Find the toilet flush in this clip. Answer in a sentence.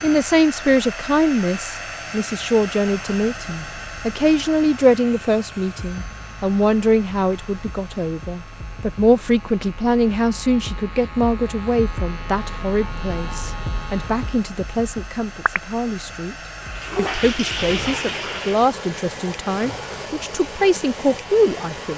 You can hear the toilet flush from 16.6 to 18.7 s.